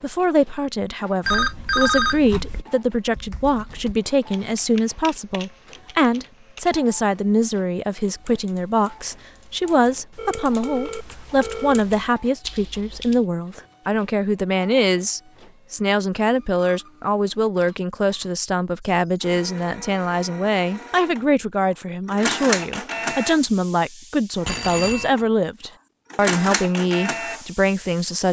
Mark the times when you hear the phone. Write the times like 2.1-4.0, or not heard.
1.2-2.6, 10.2-11.8, 24.4-25.1.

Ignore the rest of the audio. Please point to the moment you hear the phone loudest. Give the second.
2 s.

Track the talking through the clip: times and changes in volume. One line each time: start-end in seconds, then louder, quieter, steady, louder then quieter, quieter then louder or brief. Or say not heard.
0.0-28.2 steady.